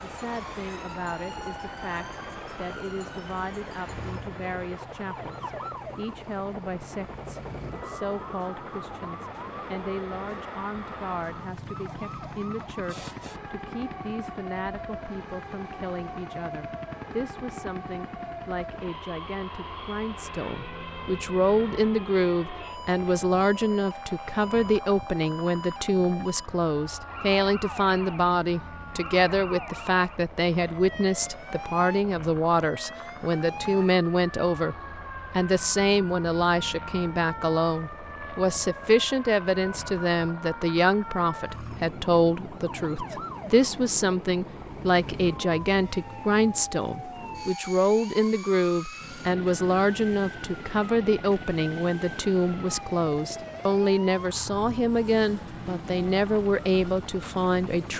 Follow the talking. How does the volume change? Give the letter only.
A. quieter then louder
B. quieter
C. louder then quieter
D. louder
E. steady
D.